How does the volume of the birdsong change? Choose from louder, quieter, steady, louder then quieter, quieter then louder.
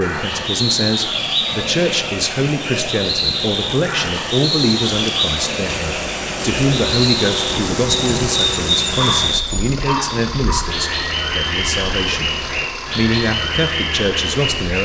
steady.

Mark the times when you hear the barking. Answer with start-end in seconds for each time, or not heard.
8.9-10.6.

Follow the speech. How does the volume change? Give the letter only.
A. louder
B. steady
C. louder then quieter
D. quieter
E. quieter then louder
B.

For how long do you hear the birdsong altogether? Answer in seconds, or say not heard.
15 s.